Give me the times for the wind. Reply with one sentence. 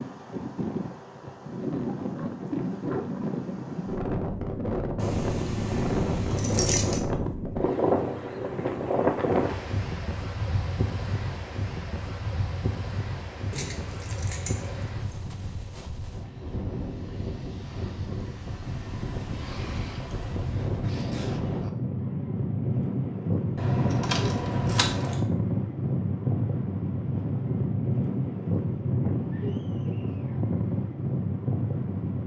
You can hear the wind from 0.0 to 32.2 s.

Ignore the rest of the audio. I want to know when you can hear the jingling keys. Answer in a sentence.
You can hear the jingling keys from 5.0 to 7.0 s, from 13.5 to 14.9 s and from 23.6 to 25.2 s.